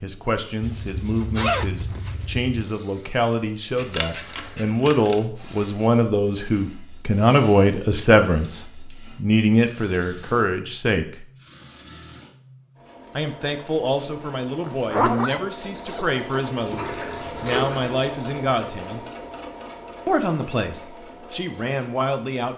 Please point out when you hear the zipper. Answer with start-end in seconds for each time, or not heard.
0.6-2.5, 14.6-16.5.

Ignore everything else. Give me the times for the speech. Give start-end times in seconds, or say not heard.
0.0-11.2, 13.2-19.1, 20.1-22.5.